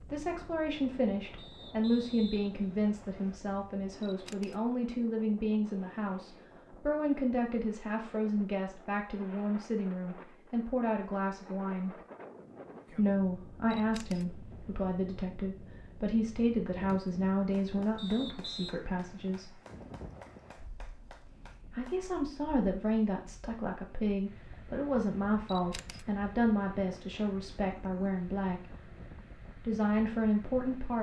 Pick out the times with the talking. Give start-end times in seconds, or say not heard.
0.0-11.9, 12.9-19.6, 21.7-28.7, 29.6-30.9.